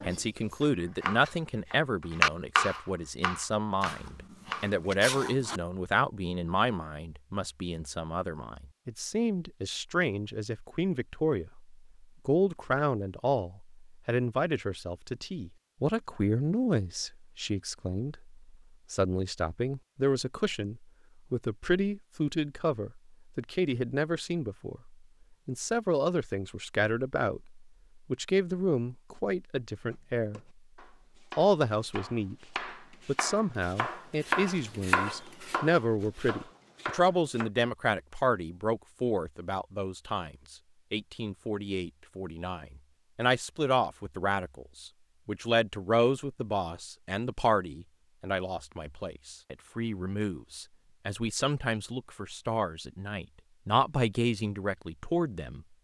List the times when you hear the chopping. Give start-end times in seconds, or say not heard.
0.0-4.7, 29.9-37.5.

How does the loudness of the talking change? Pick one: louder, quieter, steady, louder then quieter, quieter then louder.
steady.